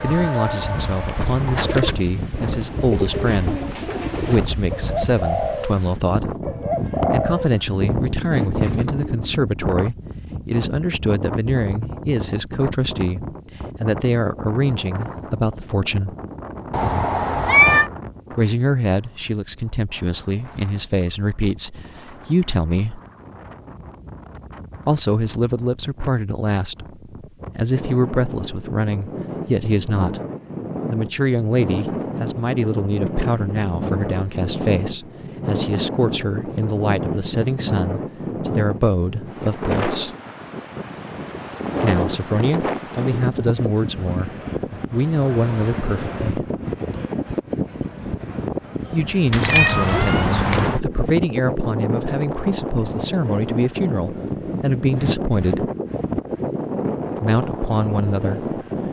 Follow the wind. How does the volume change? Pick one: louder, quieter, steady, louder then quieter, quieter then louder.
quieter then louder.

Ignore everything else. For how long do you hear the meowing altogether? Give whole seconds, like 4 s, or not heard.
3 s.